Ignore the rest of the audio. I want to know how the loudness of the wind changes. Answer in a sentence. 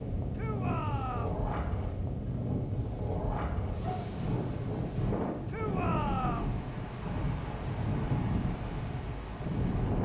The loudness of the wind stays about the same.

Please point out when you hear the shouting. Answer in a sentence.
You can hear the shouting from 0.3 to 1.4 s and from 5.5 to 6.5 s.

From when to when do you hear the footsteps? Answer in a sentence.
You can't hear the footsteps here.